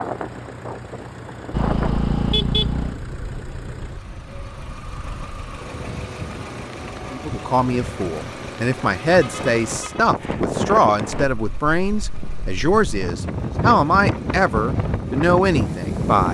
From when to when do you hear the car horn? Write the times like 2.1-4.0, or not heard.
1.5-3.0, 9.1-10.0.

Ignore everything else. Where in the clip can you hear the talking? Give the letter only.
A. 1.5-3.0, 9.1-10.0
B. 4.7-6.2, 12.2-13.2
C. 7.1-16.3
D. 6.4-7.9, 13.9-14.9
C.